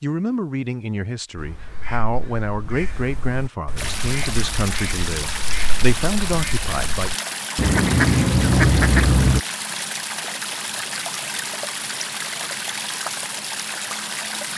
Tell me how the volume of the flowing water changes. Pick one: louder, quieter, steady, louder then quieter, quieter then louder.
steady.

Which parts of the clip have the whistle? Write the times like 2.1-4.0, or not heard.
not heard.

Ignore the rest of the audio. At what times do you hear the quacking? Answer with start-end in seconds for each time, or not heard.
1.4-9.4.